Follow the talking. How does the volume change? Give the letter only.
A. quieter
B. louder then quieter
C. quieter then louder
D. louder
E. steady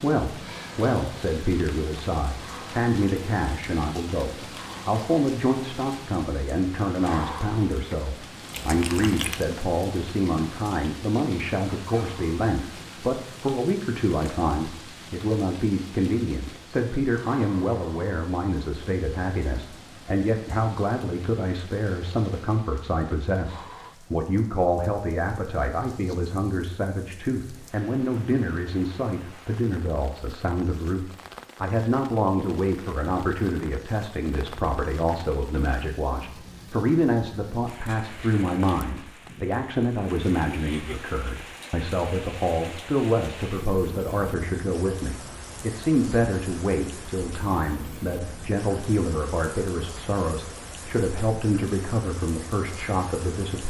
E.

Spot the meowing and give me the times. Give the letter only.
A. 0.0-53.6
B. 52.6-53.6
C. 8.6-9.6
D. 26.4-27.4
C.